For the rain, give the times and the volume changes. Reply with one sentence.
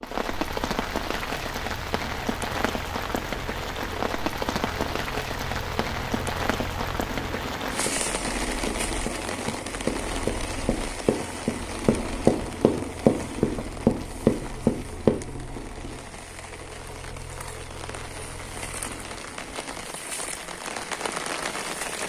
You can hear the rain from 0.0 to 22.0 s, getting quieter then louder.